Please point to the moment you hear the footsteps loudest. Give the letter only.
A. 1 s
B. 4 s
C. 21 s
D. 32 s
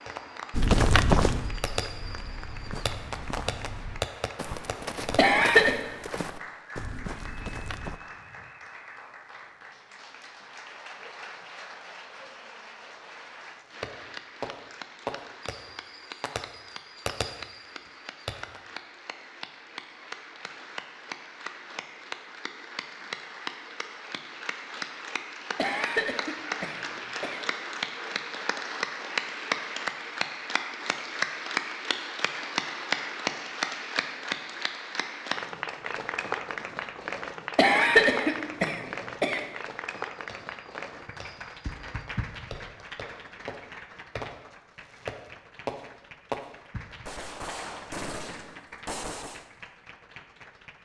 A.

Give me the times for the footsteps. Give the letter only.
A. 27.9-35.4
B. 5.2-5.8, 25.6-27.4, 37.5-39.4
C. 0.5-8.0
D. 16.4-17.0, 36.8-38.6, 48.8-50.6
C.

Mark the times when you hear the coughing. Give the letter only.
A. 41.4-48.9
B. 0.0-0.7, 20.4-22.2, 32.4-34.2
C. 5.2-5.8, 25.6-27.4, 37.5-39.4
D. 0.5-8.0
C.